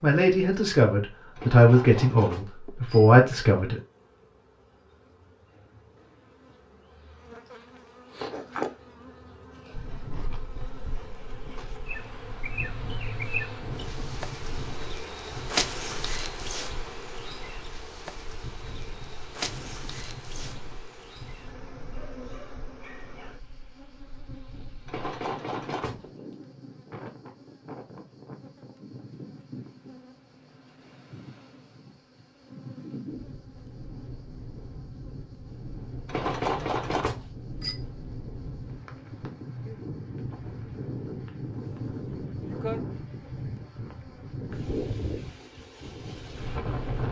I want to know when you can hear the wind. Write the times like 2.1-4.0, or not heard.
9.7-47.0.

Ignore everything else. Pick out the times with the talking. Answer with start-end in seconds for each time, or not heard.
0.0-3.8.